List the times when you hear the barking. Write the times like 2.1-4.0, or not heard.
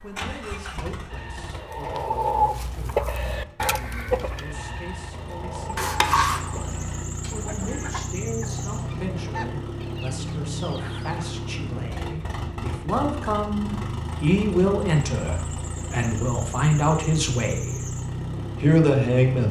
not heard.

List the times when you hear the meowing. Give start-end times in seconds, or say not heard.
5.8-7.9.